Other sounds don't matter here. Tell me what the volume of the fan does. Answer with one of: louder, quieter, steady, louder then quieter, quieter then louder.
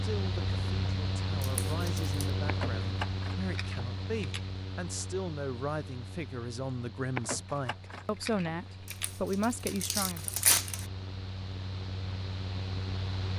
quieter then louder.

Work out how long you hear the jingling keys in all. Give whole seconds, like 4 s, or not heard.
4 s.